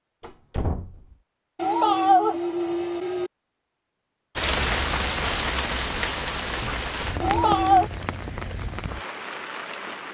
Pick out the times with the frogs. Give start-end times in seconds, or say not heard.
not heard.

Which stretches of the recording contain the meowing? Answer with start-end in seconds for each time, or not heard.
1.6-3.3, 7.2-7.9.